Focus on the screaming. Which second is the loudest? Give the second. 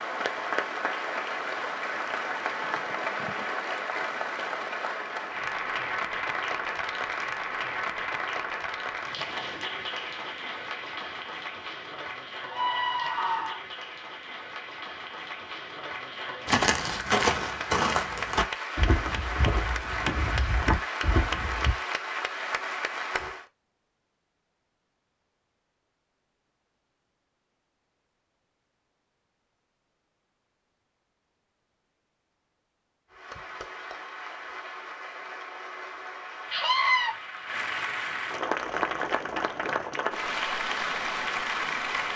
37 s.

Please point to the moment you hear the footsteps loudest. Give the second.
17 s.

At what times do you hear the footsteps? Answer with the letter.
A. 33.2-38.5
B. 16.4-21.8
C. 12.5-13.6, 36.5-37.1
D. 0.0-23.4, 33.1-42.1
B.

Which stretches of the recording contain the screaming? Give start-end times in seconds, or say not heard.
12.5-13.6, 36.5-37.1.